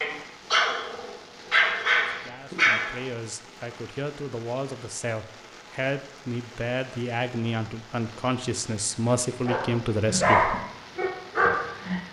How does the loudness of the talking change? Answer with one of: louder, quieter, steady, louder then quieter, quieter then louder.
louder.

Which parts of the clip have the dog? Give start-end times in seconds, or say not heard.
0.0-3.0, 9.4-12.0.